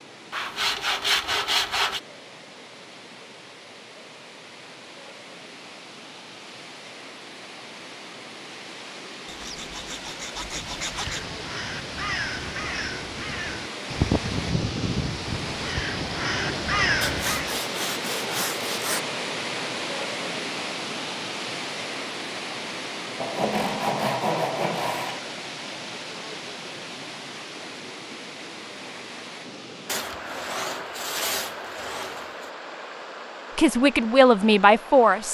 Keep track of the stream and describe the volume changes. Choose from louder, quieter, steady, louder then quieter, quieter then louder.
louder then quieter.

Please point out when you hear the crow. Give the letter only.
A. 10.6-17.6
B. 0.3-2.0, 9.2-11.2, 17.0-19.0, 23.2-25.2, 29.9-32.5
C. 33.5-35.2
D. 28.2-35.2
A.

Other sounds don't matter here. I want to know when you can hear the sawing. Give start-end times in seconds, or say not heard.
0.3-2.0, 9.2-11.2, 17.0-19.0, 23.2-25.2, 29.9-32.5.